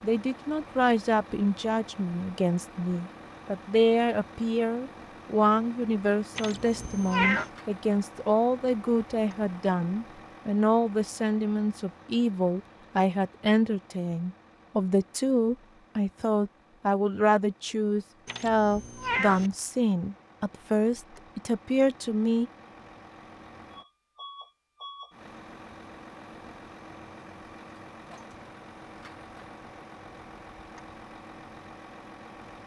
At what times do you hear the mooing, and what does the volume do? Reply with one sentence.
The mooing can't be heard in this clip.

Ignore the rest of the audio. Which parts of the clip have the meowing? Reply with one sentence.
You can hear the meowing from 6.3 to 7.5 s and from 18.2 to 19.5 s.